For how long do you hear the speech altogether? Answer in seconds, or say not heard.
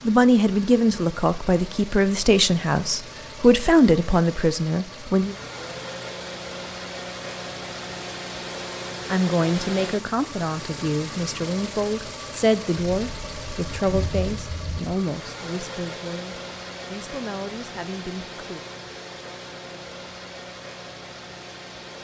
15 s.